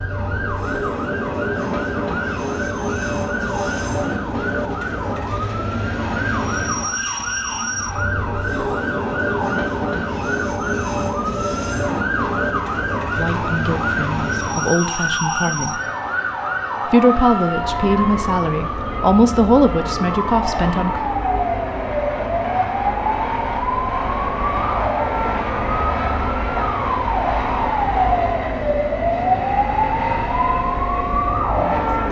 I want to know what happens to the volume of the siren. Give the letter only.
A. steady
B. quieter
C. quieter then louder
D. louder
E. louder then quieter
D.